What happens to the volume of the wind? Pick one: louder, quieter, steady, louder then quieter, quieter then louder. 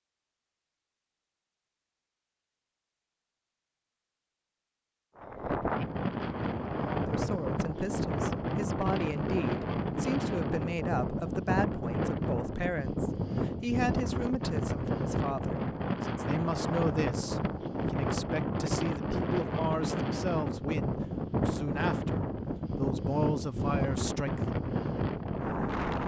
steady.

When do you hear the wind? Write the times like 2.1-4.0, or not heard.
5.2-26.0.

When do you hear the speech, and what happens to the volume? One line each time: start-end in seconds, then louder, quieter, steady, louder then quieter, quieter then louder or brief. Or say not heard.
7.0-24.6 steady.